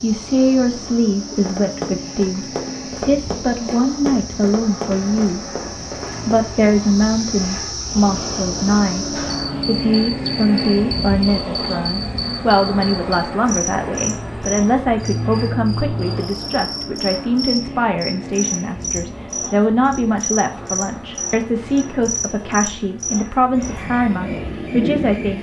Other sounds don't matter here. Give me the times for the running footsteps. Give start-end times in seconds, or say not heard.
1.4-6.2.